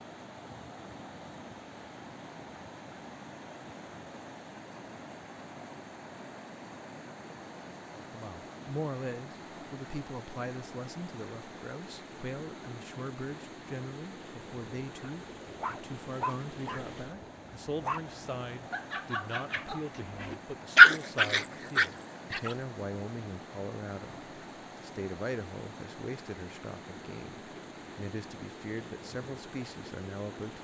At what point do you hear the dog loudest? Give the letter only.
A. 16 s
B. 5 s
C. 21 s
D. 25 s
C.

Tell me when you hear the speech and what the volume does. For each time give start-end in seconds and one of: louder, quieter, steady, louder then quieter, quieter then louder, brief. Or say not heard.
8.0-30.6 steady.